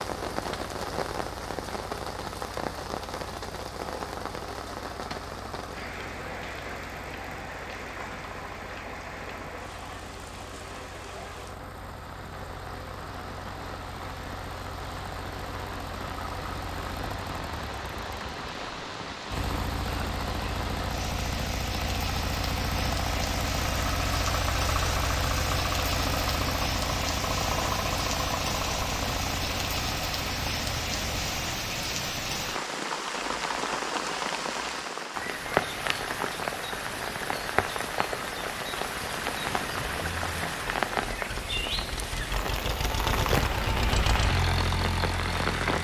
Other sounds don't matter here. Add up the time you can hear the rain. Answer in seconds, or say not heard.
46 s.